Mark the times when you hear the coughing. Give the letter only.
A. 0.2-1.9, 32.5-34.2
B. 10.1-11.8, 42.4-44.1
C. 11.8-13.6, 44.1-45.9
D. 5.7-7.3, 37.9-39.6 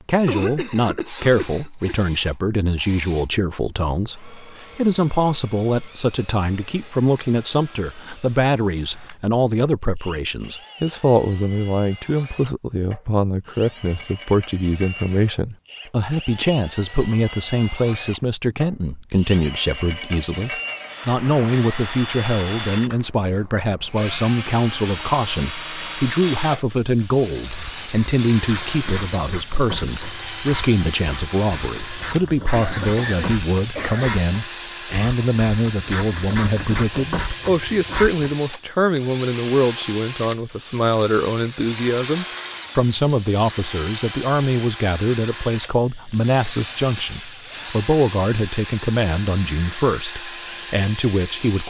A.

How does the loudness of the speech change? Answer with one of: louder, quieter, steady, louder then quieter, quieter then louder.
steady.